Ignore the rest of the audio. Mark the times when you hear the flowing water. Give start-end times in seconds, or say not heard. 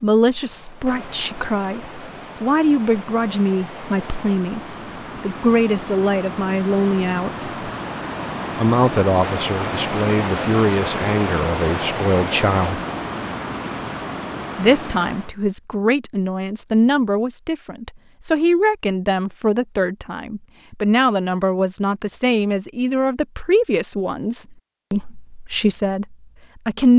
0.1-15.3.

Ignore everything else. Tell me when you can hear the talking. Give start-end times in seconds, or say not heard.
0.0-7.7, 8.6-12.8, 14.6-26.9.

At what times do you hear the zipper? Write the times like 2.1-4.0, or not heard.
not heard.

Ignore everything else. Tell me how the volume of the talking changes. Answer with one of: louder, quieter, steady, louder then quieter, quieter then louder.
steady.